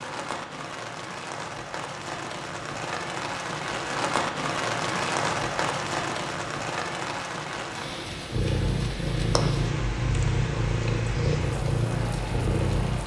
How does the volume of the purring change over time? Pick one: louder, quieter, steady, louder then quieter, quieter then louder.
steady.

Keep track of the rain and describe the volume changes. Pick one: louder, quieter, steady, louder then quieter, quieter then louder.
louder then quieter.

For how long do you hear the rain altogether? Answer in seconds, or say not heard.
13 s.